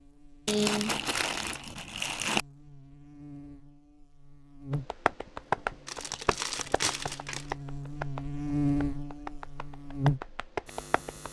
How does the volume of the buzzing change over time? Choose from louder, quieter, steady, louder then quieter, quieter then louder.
louder.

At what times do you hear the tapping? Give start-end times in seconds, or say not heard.
4.7-11.2.